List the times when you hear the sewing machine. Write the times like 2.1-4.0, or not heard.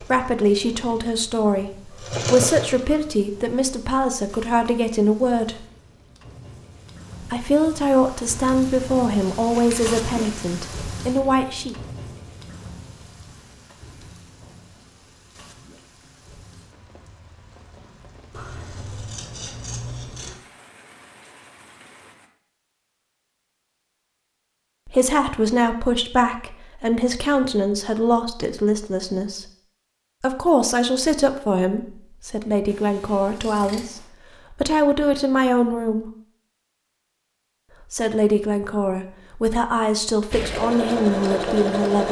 0.0-3.0, 40.3-42.0.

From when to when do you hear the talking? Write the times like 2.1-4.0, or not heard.
0.0-5.7, 7.2-11.8, 24.9-29.5, 30.2-36.1, 37.9-42.0.